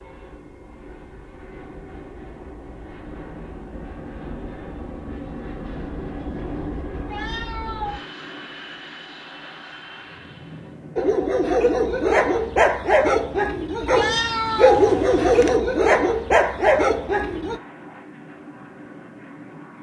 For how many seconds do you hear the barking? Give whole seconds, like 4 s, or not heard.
7 s.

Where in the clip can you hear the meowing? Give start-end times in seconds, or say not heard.
7.0-8.0, 13.9-15.6.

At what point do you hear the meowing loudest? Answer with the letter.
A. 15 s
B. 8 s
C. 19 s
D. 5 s
A.